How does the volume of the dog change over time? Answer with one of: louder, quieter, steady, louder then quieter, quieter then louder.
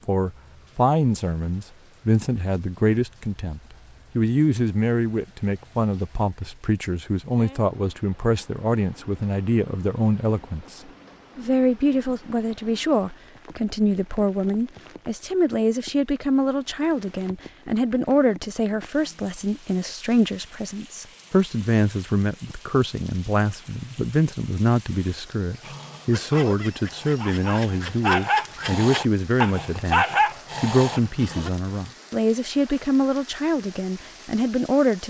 louder.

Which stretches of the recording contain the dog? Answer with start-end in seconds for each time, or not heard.
25.6-31.5.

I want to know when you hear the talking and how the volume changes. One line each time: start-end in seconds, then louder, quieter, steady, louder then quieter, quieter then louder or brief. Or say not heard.
0.1-35.0 steady.